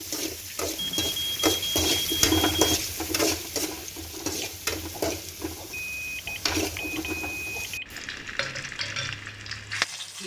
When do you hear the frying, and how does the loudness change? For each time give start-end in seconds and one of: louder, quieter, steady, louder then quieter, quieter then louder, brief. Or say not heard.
0.0-10.2 quieter.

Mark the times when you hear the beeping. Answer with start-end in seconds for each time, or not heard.
0.8-2.8, 5.7-7.8.